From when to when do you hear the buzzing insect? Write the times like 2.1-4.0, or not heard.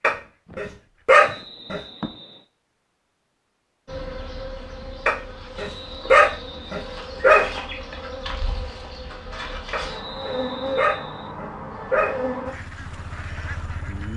3.9-12.6.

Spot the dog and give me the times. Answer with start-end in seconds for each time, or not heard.
0.0-1.8, 5.0-7.5, 9.7-12.2.